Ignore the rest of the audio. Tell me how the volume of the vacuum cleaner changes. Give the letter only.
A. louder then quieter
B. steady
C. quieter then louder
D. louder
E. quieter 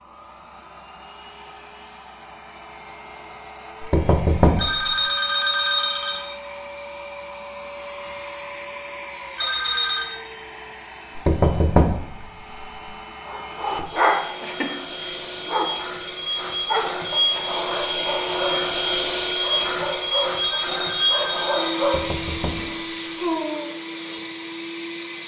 D.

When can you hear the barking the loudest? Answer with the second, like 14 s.
14 s.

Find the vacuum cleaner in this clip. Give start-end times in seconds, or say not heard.
0.0-25.2.